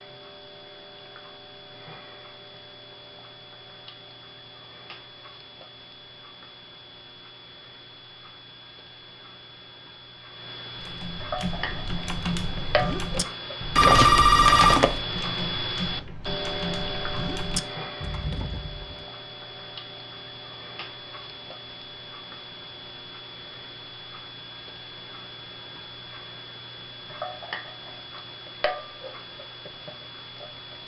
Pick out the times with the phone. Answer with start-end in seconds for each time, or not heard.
13.8-15.0.